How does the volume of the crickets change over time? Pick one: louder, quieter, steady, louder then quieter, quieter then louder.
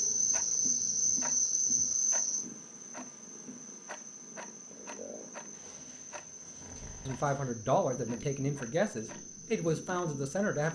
quieter.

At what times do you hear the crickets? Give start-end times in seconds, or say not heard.
0.0-10.7.